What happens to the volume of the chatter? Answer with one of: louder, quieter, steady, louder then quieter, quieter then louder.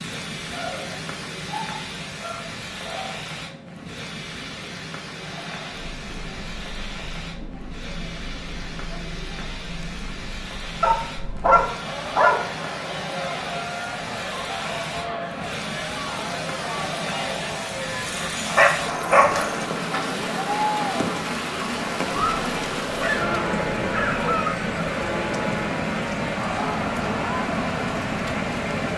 louder.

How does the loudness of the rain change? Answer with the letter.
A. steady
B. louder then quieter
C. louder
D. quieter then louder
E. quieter
C.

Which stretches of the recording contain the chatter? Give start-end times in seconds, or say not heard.
5.1-28.9.